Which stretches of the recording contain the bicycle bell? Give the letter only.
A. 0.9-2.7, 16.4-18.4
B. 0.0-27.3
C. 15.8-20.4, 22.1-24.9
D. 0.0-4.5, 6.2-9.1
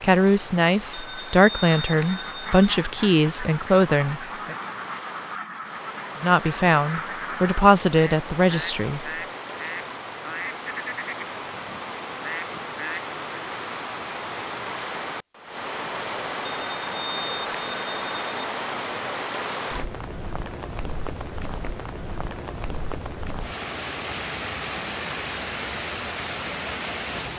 A.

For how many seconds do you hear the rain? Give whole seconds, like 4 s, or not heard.
27 s.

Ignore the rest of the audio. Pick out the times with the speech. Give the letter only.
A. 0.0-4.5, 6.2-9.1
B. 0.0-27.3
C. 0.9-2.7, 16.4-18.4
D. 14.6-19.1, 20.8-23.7
A.